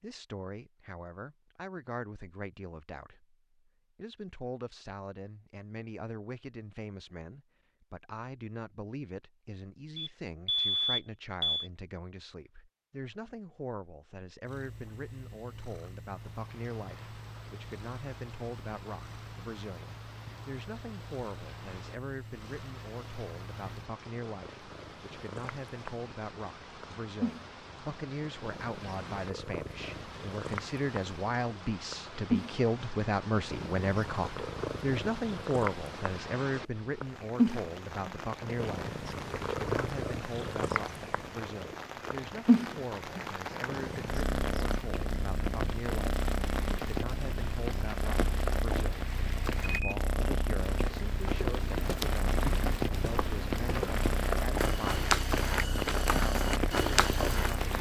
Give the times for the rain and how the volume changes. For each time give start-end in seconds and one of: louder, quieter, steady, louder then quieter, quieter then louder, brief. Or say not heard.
16.1-57.7 louder.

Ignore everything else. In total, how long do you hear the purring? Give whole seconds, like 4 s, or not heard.
43 s.